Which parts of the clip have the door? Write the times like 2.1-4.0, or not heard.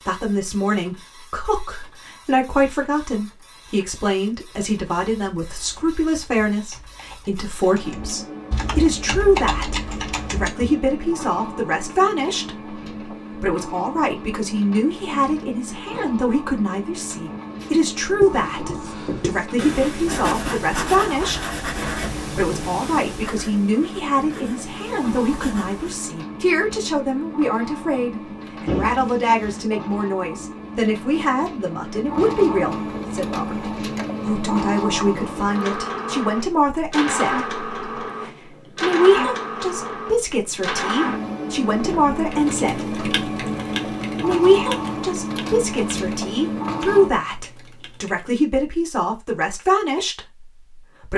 28.6-29.6.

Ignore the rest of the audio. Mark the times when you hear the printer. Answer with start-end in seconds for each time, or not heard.
0.0-47.1.